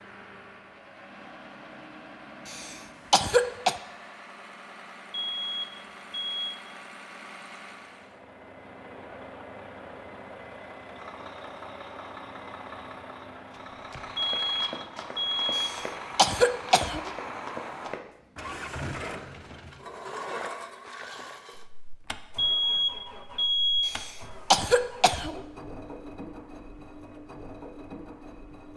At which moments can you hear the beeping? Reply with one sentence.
You can hear the beeping from 5.1 to 6.5 s, from 14.2 to 15.6 s and from 22.4 to 23.9 s.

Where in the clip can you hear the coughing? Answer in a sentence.
You can hear the coughing from 2.5 to 3.8 s, from 15.6 to 17.1 s and from 23.9 to 25.4 s.